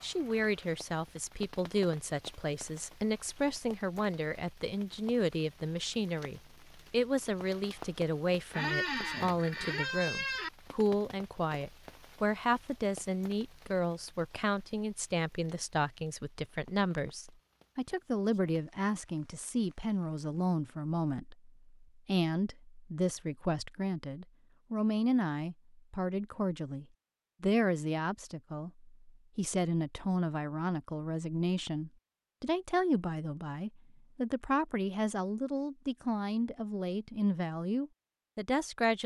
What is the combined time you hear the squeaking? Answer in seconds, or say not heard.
2 s.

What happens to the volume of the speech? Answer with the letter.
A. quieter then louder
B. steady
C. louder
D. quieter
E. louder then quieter
B.